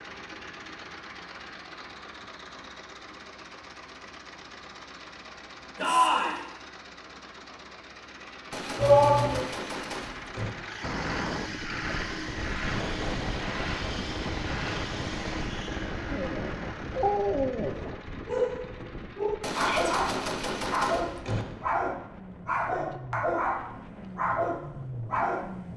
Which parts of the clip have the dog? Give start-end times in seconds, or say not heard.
16.1-25.5.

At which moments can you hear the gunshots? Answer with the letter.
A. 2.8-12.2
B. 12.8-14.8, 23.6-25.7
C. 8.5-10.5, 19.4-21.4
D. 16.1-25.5
C.